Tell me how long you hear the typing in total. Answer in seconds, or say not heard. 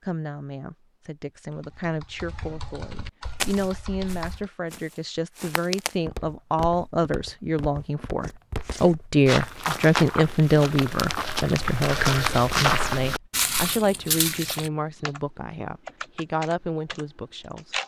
6 s.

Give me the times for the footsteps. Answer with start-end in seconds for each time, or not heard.
3.4-14.7.